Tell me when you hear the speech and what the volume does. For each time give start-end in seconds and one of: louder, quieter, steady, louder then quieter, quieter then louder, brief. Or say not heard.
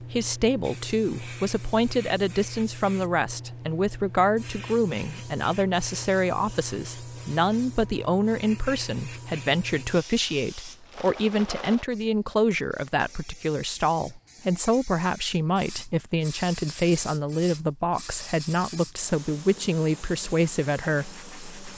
0.0-21.7 steady.